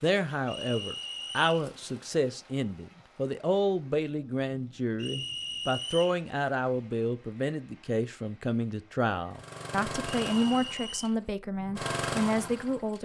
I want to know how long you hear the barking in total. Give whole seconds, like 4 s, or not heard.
not heard.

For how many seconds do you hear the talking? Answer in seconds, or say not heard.
13 s.